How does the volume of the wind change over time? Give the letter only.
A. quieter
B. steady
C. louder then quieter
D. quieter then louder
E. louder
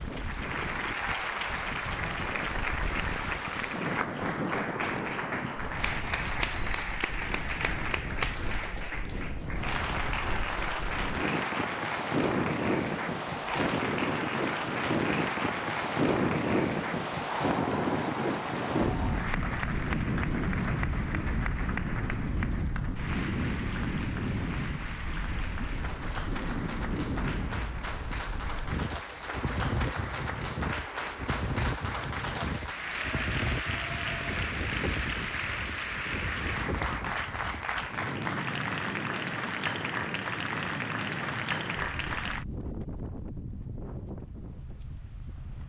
C.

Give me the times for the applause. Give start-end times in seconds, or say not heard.
0.0-42.5.